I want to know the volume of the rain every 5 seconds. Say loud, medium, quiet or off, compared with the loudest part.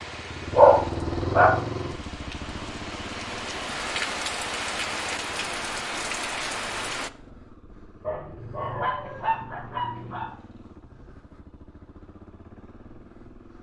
loud, loud, off.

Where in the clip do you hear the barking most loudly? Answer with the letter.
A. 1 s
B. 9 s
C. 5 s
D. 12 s
A.